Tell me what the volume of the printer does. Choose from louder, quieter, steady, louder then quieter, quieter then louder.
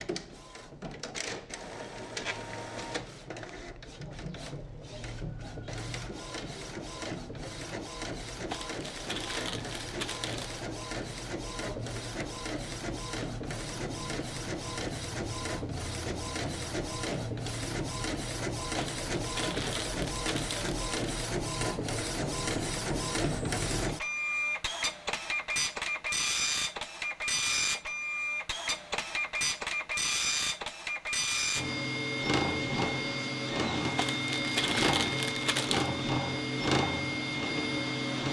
louder.